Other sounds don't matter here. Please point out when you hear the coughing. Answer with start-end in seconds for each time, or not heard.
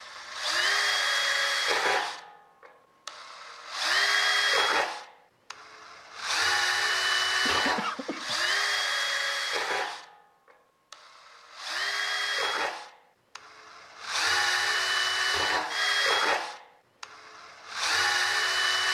7.5-8.3.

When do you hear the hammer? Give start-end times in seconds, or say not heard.
not heard.